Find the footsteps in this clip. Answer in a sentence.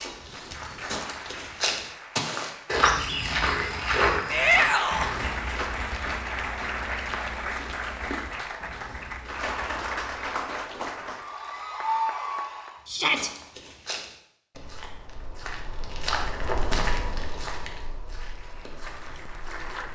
The footsteps can be heard from 0.0 to 10.3 s and from 12.8 to 19.9 s.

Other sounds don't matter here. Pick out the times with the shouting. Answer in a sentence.
You can hear the shouting from 4.3 to 5.2 s and from 12.8 to 13.3 s.